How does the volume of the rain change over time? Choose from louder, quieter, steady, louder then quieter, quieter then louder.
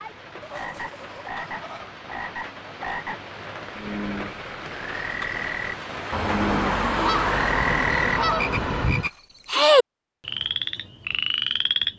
louder.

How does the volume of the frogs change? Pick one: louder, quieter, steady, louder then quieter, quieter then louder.
louder.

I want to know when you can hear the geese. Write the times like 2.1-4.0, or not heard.
0.4-2.0, 6.1-9.1.